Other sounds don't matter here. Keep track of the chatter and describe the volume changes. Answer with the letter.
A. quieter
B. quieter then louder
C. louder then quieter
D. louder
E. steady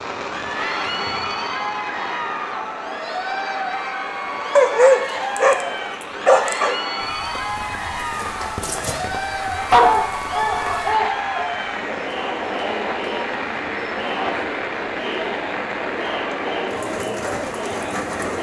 E.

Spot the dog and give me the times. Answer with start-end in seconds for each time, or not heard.
4.5-5.7, 6.2-6.8, 9.7-11.5.